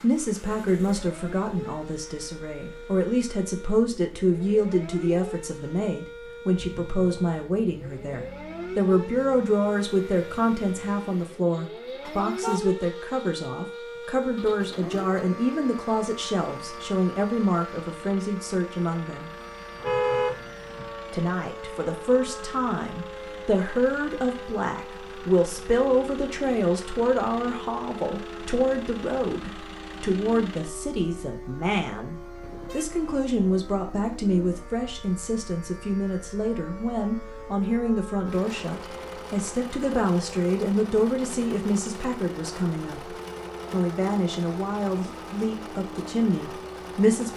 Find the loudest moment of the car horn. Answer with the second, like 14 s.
20 s.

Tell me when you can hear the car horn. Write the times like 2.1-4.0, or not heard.
12.1-12.6, 19.8-20.9, 32.4-33.3.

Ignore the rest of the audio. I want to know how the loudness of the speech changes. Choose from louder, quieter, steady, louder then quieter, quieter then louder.
steady.